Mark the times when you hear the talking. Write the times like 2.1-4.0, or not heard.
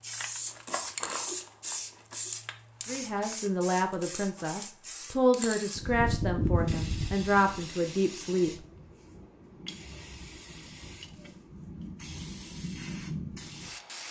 2.9-8.6.